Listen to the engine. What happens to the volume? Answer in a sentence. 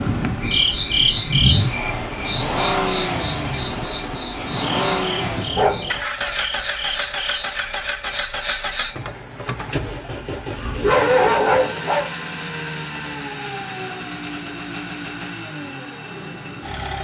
The volume of the engine goes down.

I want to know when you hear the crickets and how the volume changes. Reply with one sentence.
The crickets can be heard from 0.0 to 9.1 s, getting quieter.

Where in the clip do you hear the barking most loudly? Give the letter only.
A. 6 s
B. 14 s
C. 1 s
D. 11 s
D.